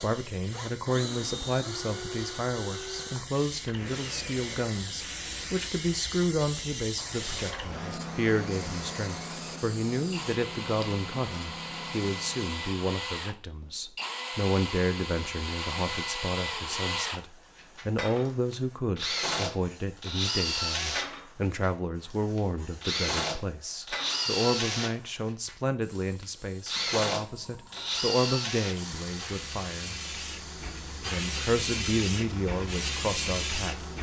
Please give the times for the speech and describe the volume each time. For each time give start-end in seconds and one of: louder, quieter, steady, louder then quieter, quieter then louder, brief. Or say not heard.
0.0-29.9 steady
30.9-33.9 brief.